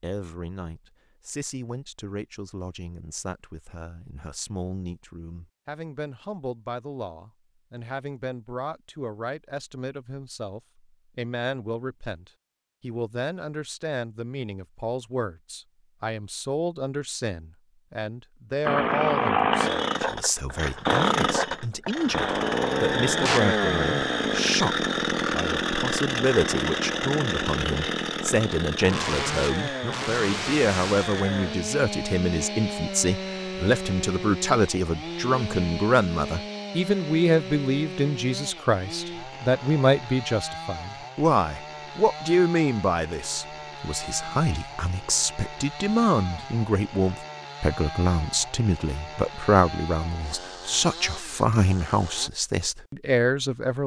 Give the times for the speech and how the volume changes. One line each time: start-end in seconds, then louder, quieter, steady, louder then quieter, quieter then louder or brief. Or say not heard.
0.0-53.8 louder.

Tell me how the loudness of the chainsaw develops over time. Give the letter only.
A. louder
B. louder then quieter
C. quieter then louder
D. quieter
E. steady
D.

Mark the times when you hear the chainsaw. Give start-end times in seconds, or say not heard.
18.6-52.3.